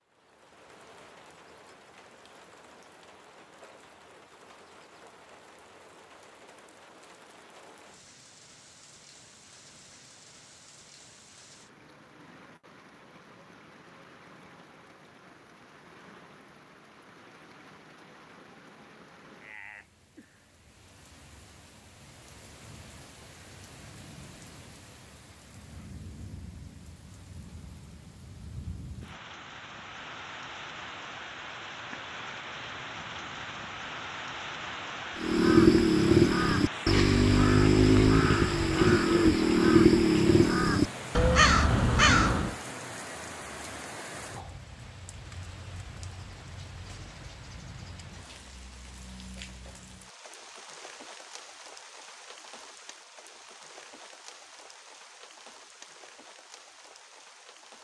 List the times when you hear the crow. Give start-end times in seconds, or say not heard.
35.1-42.5.